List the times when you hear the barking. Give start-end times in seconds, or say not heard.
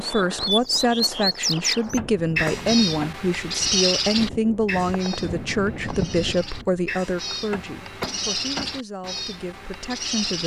not heard.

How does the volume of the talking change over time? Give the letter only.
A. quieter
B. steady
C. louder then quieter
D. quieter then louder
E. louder
A.